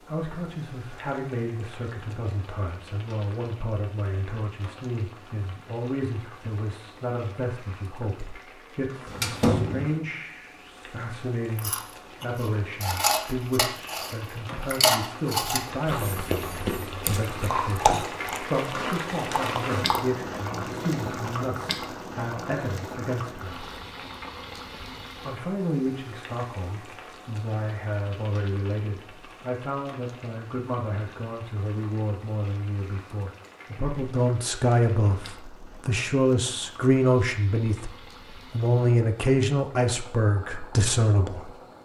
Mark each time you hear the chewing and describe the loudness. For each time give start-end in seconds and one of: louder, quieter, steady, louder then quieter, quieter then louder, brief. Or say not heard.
11.6-20.0 quieter.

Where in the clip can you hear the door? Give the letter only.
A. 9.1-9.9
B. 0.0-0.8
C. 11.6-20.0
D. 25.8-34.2
A.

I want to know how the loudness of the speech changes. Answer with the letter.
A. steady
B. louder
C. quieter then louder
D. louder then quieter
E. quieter
B.